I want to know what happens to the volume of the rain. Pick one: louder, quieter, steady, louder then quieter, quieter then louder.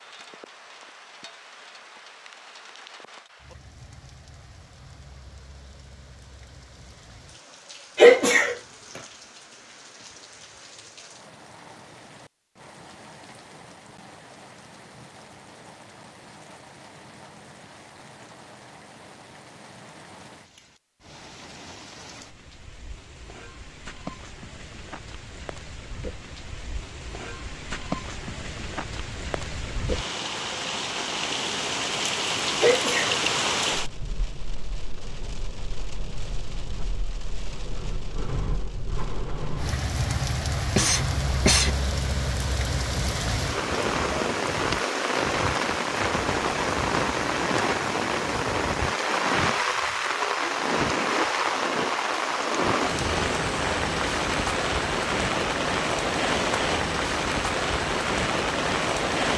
louder.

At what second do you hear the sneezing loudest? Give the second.
8 s.